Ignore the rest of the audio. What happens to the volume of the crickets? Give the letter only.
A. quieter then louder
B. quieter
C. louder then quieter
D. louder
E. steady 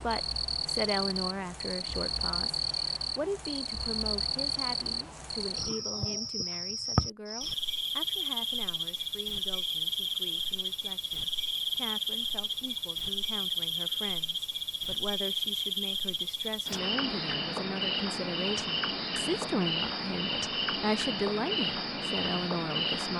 E.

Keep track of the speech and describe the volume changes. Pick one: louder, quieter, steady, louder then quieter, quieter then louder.
quieter then louder.